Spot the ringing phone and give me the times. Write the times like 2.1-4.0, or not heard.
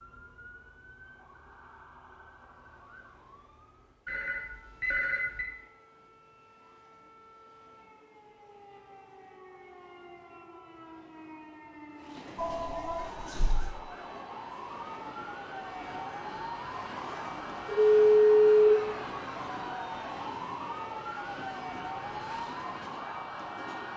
4.0-5.5, 12.3-13.8, 17.6-18.7.